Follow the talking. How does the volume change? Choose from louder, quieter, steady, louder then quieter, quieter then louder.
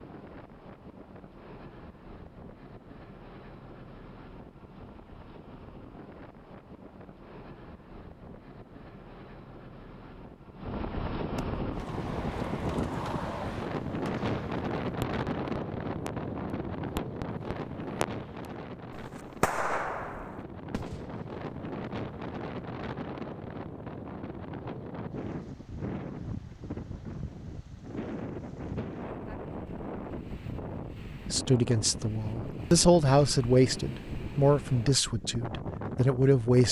louder then quieter.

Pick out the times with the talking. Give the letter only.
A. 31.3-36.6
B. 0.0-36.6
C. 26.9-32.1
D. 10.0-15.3
A.